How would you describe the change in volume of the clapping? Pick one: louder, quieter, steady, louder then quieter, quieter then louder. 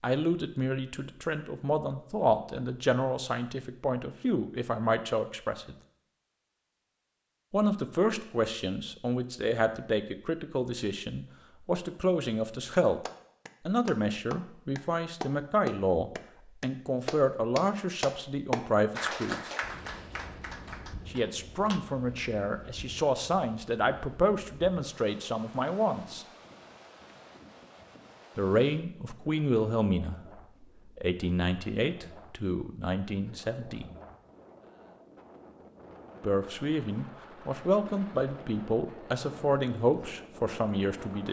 louder then quieter.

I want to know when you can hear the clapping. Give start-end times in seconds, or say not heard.
13.1-21.8.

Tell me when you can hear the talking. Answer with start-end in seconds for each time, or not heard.
0.0-5.8, 7.5-13.0, 13.7-19.5, 21.1-26.2, 28.4-33.9, 36.2-41.2.